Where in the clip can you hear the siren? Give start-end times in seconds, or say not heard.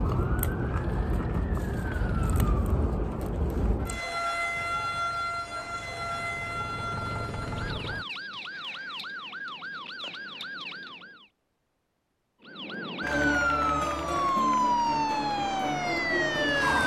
0.0-11.3, 12.4-16.8.